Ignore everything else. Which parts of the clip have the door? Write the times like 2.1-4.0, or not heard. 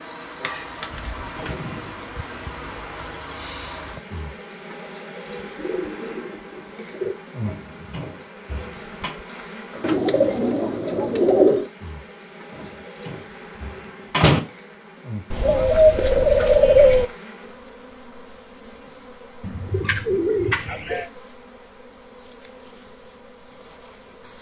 7.4-9.2, 12.6-14.4.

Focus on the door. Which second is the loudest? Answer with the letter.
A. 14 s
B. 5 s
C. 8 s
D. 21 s
A.